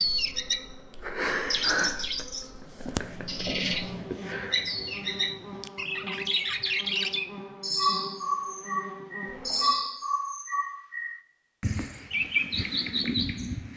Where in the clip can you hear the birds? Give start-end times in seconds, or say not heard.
0.0-13.7.